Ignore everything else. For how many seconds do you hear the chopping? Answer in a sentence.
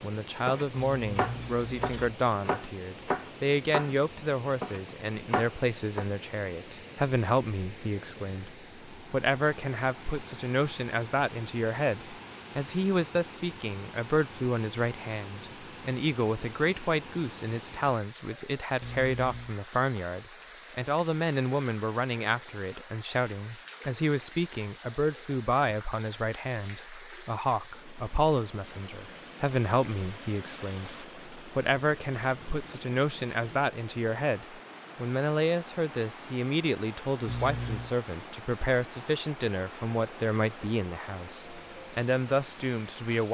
You can hear the chopping for 6 seconds altogether.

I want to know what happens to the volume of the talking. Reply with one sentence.
The volume of the talking stays about the same.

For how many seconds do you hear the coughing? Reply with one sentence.
The coughing can be heard for 3 seconds in total.